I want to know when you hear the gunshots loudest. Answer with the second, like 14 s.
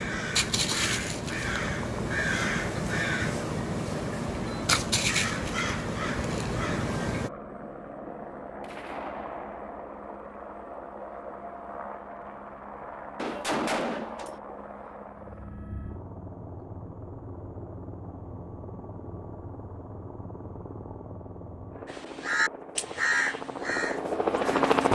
14 s.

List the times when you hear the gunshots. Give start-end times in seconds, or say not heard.
8.6-9.7, 13.2-14.4.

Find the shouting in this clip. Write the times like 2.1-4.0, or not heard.
not heard.